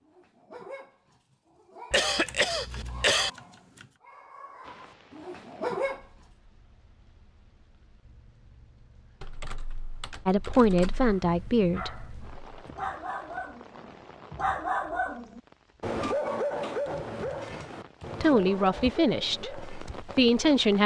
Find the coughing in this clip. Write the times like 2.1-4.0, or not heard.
1.9-3.3.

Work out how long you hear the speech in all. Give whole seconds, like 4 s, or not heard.
5 s.